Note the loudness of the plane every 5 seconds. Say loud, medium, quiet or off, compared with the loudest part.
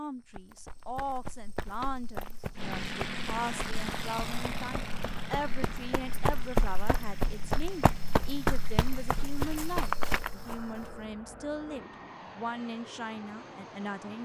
loud, medium, medium.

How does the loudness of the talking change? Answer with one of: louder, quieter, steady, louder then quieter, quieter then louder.
steady.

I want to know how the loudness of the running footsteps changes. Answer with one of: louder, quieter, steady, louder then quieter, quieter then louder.
louder.